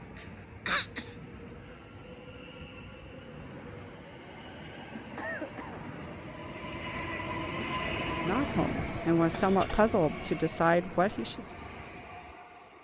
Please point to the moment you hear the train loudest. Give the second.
8 s.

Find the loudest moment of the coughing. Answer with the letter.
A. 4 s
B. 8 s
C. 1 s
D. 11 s
C.